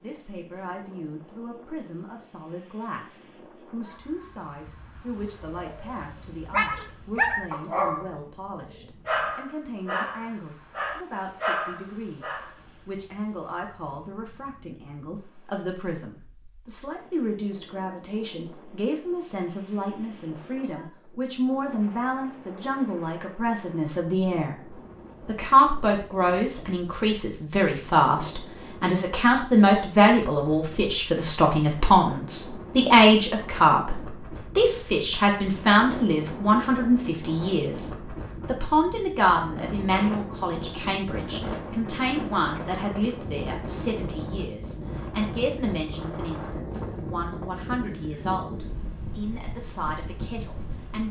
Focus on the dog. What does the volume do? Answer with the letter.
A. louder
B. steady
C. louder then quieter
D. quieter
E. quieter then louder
A.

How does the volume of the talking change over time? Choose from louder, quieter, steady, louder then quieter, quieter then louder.
louder then quieter.